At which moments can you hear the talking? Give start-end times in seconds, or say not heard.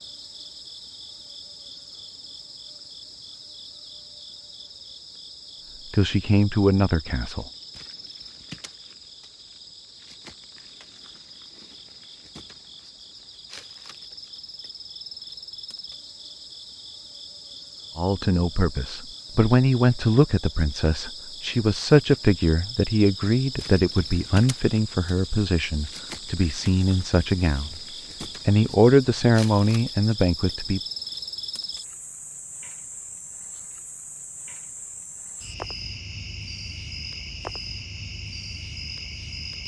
5.9-7.5, 17.9-27.8, 28.4-30.8.